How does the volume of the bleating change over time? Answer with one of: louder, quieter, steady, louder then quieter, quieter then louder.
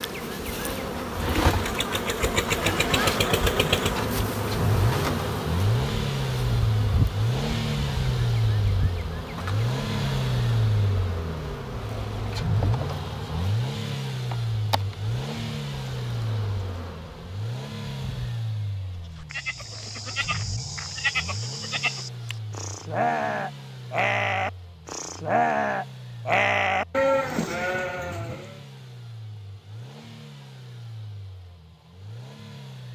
louder.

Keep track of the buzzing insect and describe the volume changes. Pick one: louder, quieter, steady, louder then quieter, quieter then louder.
quieter.